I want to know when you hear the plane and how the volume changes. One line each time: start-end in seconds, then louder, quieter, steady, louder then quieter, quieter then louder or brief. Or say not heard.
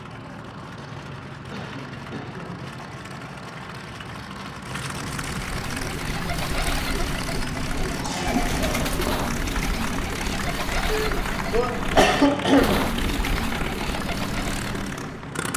0.0-15.5 louder.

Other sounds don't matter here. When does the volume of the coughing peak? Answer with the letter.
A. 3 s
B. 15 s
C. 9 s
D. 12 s
D.